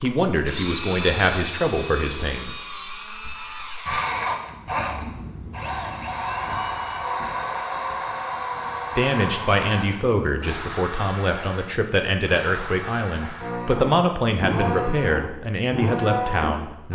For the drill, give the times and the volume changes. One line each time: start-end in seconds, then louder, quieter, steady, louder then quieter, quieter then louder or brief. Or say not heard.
0.0-16.8 quieter then louder.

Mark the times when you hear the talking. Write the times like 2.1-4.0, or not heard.
0.0-2.6, 8.9-16.8.